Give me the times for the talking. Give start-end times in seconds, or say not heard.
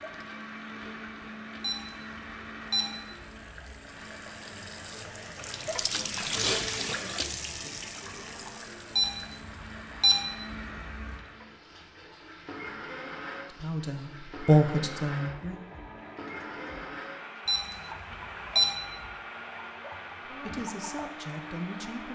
13.4-15.6, 20.2-22.1.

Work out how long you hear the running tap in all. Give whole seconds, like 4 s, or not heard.
22 s.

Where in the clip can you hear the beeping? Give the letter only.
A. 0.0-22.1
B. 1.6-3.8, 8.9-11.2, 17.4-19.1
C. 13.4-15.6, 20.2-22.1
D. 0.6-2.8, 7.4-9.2
B.